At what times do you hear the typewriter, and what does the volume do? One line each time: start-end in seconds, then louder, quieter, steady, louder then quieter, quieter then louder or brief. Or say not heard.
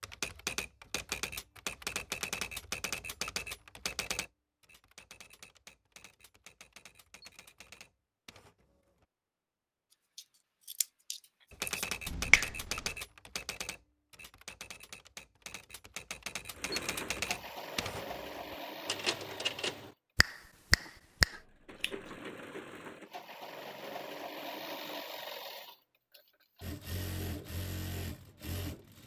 0.0-9.1 quieter
11.5-19.9 quieter then louder.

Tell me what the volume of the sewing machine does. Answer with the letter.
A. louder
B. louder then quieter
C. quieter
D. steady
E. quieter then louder
E.